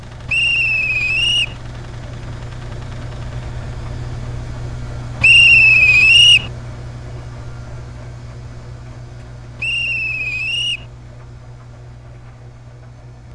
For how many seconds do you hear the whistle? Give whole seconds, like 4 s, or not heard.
4 s.